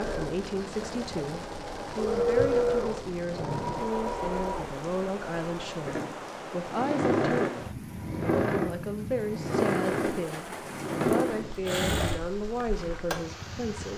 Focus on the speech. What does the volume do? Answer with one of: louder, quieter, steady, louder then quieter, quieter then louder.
steady.